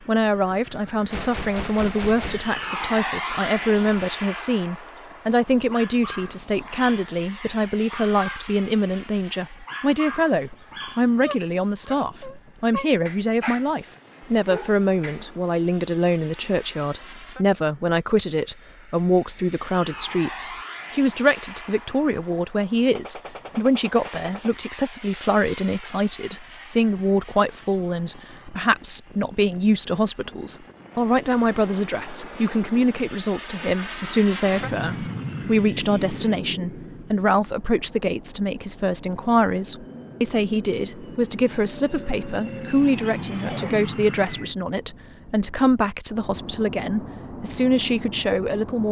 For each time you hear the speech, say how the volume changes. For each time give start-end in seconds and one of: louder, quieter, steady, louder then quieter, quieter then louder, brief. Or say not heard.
0.1-48.8 steady.